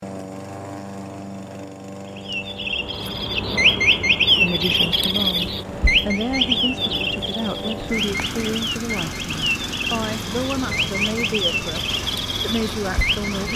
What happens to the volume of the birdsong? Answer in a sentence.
The volume of the birdsong goes down.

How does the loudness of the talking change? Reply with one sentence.
The loudness of the talking stays about the same.